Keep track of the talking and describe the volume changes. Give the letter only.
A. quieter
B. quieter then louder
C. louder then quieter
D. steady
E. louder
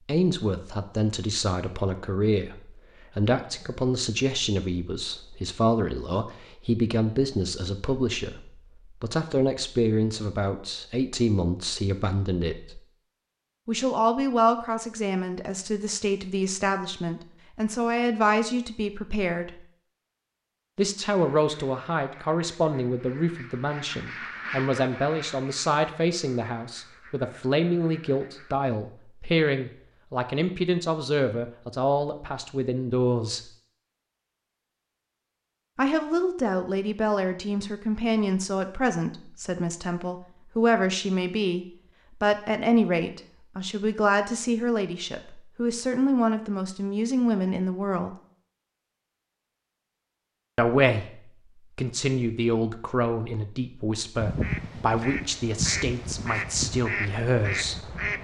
D.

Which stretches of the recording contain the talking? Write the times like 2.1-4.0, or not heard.
0.1-12.8, 13.7-19.6, 20.8-33.4, 35.8-48.1, 50.5-58.0.